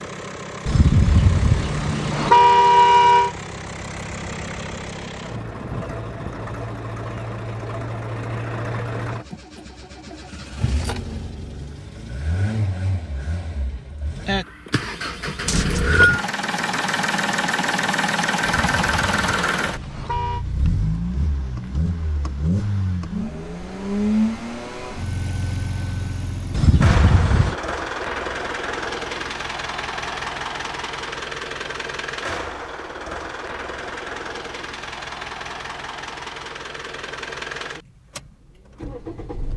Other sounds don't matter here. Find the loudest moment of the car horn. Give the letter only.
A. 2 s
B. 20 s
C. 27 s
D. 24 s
A.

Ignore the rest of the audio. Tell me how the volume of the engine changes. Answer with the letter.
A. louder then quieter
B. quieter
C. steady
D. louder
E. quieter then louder
A.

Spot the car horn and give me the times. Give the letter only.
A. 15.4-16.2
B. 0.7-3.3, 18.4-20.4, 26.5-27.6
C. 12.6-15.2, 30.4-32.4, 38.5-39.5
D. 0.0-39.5
B.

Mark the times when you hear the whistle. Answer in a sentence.
The whistle can be heard from 15.4 to 16.2 s.